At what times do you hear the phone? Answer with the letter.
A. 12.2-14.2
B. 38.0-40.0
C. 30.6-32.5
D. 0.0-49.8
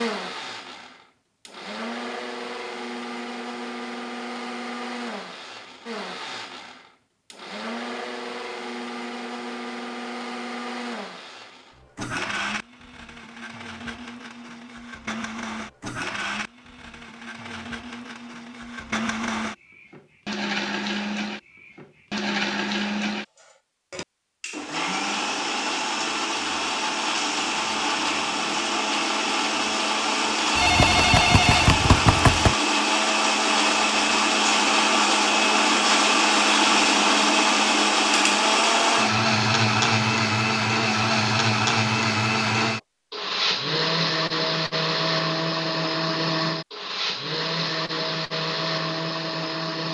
C.